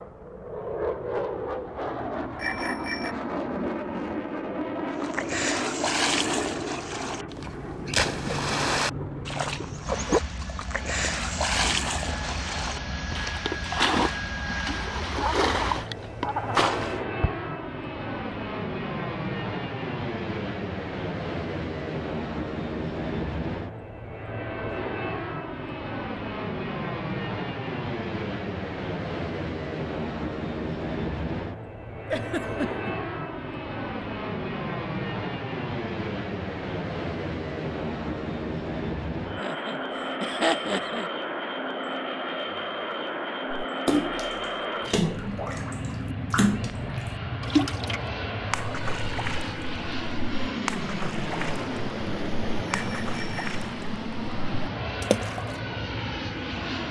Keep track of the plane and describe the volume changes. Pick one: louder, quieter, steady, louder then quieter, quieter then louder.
steady.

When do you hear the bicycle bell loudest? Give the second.
3 s.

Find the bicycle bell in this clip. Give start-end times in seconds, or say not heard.
2.4-3.1, 52.7-53.6.